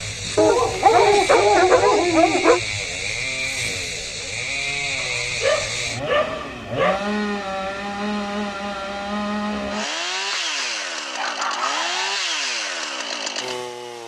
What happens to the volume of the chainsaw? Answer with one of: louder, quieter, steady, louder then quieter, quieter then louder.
steady.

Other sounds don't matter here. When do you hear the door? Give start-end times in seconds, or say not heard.
not heard.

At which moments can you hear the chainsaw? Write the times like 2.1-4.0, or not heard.
0.0-14.0.